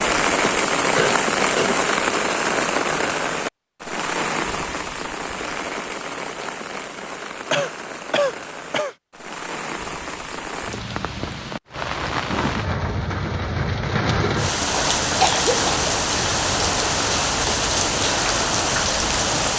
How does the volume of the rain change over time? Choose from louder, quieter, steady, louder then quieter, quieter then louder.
quieter then louder.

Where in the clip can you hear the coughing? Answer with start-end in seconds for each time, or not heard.
0.4-1.8, 7.5-8.9, 15.0-15.8.